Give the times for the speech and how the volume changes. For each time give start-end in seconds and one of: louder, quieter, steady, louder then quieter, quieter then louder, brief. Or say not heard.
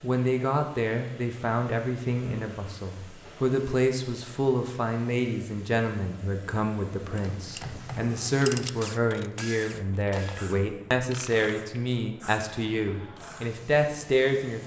0.0-14.6 steady.